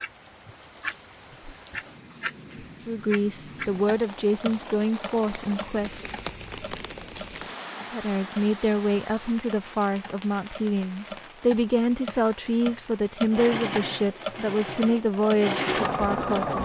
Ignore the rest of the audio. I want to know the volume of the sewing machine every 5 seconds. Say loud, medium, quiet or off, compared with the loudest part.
off, off, medium, loud.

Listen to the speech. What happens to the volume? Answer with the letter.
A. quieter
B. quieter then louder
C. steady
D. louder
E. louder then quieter
C.